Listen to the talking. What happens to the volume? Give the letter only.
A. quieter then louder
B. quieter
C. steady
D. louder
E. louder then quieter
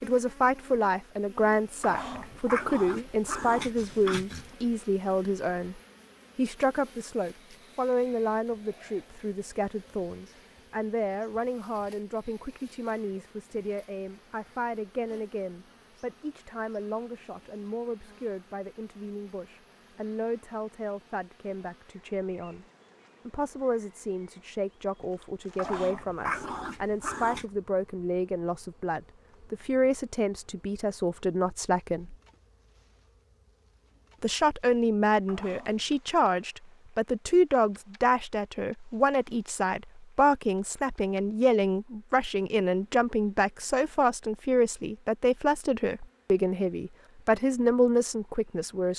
A.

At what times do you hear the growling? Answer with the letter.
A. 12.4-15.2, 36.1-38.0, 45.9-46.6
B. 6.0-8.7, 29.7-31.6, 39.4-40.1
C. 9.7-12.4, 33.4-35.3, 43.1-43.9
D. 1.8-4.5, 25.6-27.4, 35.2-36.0
D.